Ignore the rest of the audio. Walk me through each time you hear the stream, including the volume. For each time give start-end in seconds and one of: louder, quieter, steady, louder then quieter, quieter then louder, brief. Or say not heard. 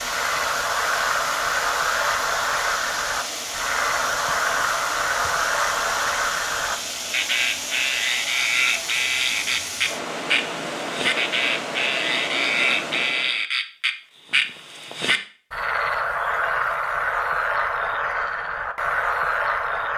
0.0-13.4 steady.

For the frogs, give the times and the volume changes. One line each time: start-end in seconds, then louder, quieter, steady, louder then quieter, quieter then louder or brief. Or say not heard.
0.0-19.9 steady.